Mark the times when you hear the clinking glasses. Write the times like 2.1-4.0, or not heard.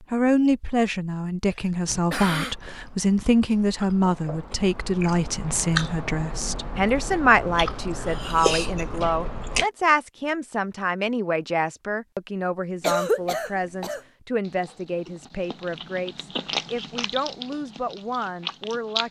not heard.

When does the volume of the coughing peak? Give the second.
13 s.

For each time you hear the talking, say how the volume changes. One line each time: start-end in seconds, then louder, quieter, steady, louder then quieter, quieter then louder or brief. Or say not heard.
0.1-19.0 quieter.